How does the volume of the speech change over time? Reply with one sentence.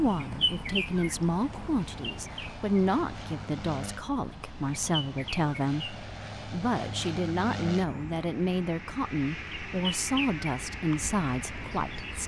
The volume of the speech stays about the same.